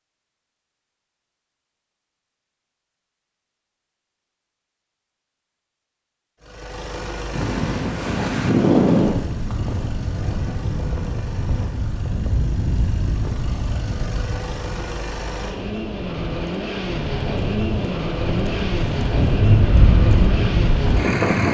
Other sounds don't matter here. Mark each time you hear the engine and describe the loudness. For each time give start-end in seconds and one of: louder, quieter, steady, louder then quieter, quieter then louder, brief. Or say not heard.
6.4-21.4 quieter then louder.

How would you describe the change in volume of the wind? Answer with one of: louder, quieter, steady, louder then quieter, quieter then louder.
quieter then louder.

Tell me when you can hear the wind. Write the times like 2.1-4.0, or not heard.
7.3-21.4.